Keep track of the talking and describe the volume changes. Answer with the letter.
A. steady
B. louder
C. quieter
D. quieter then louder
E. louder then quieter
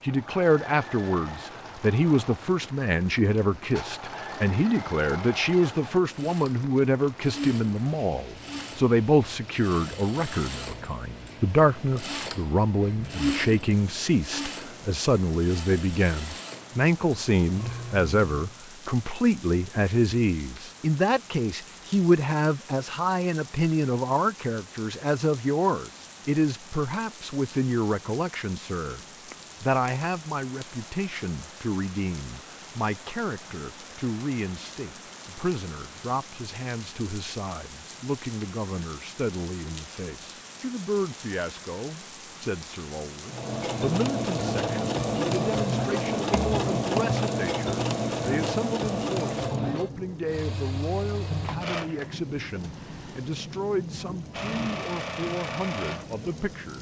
C.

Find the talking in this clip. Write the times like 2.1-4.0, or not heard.
0.0-29.0, 29.6-56.7.